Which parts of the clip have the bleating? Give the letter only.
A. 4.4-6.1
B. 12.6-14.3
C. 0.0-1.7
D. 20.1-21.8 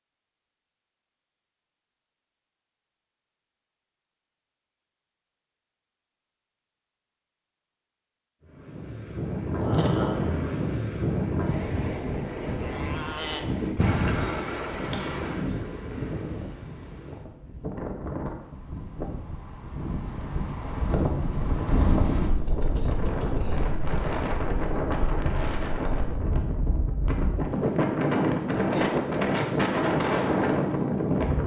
B.